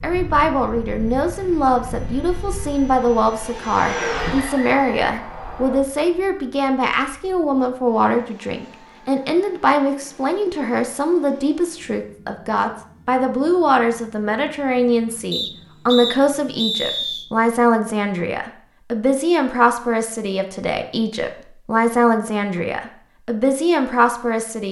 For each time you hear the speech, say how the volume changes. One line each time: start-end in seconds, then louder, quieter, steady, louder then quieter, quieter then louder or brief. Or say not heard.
0.0-24.6 steady.